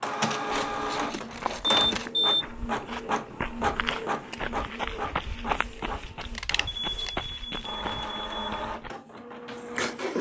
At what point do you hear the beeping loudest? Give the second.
2 s.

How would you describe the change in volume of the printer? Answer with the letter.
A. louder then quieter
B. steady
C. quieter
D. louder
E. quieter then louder
E.